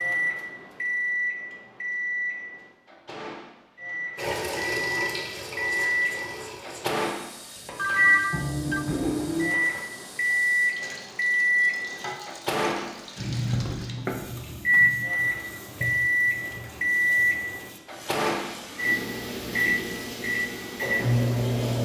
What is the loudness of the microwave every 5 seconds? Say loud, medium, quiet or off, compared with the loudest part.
medium, loud, loud, loud, loud.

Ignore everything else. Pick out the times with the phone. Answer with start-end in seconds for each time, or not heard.
7.8-8.8.